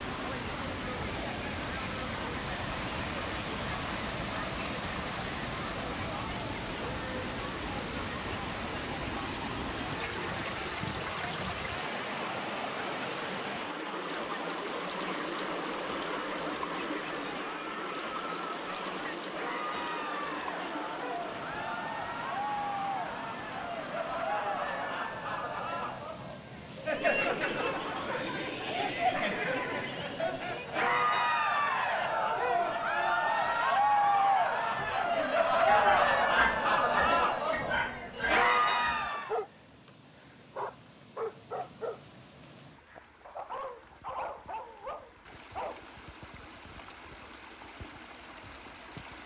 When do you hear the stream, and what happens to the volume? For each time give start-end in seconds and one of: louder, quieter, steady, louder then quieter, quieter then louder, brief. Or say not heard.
0.0-49.2 quieter.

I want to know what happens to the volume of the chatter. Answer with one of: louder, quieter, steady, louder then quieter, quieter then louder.
louder.